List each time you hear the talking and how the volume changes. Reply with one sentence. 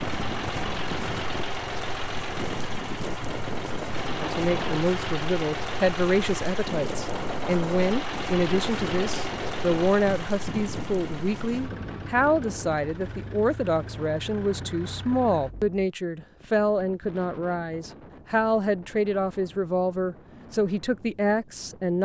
The talking can be heard from 4.2 to 22.0 s, at a steady volume.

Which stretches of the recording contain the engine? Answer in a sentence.
You can hear the engine from 0.0 to 15.7 s.